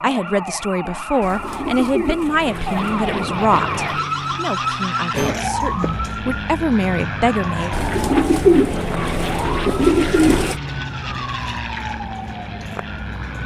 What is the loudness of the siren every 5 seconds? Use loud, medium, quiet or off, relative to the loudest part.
loud, loud, medium.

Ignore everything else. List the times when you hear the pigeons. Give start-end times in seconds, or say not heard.
1.2-3.1, 7.7-10.6.